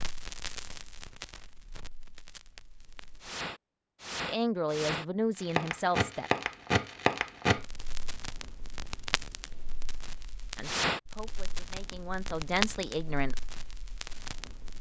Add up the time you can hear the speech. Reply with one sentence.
The speech can be heard for 5 seconds in total.